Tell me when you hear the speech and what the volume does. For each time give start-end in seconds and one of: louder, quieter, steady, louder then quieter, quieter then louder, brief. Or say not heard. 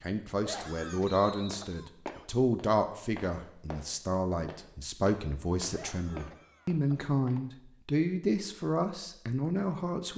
0.0-10.1 steady.